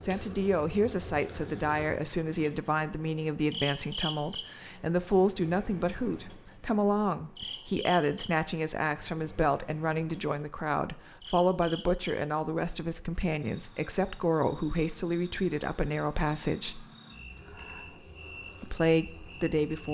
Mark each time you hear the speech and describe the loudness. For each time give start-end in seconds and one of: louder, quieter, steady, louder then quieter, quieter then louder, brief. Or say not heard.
0.0-16.9 steady
18.6-19.8 brief.